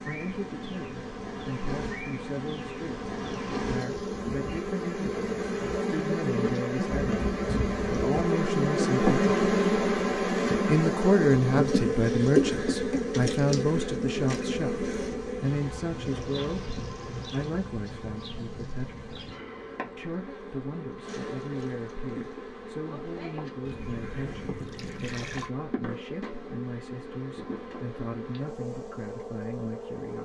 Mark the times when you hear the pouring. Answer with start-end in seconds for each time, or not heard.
3.2-4.2, 16.1-17.7, 23.6-25.5.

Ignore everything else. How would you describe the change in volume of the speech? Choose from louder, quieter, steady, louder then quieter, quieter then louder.
louder then quieter.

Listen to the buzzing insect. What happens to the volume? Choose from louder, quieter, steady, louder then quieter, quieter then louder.
louder then quieter.